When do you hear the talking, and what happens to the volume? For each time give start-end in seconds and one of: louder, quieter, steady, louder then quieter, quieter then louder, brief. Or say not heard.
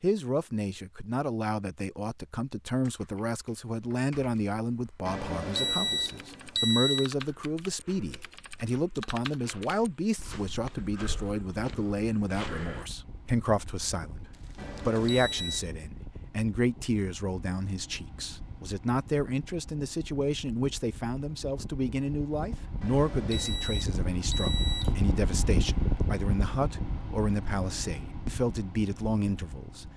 0.0-29.9 steady.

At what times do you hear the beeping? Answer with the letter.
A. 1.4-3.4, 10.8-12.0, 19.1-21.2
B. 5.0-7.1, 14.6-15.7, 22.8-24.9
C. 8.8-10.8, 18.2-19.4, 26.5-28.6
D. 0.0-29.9
B.